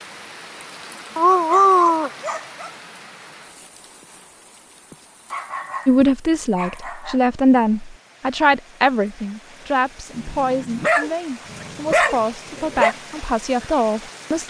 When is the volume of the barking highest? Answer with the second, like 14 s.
2 s.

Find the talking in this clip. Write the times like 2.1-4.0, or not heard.
5.8-14.4.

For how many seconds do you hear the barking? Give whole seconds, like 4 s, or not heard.
6 s.